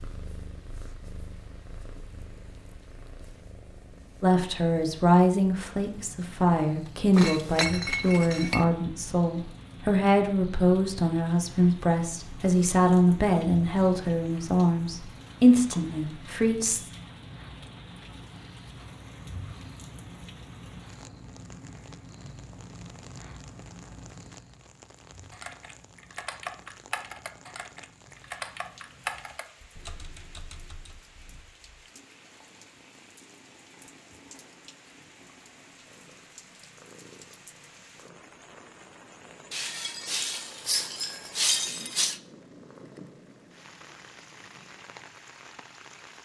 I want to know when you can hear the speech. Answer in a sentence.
The speech can be heard from 4.2 to 16.9 s.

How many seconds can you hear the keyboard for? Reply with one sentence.
You can hear the keyboard for 6 seconds altogether.